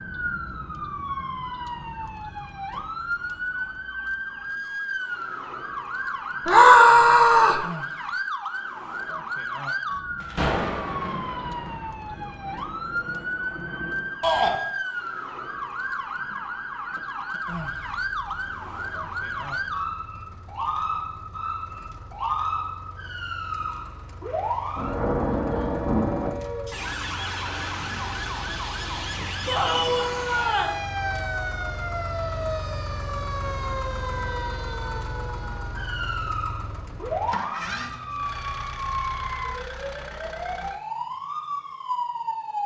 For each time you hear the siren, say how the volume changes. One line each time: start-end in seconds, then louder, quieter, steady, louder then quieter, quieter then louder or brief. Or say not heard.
0.0-42.6 steady.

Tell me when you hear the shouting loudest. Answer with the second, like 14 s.
7 s.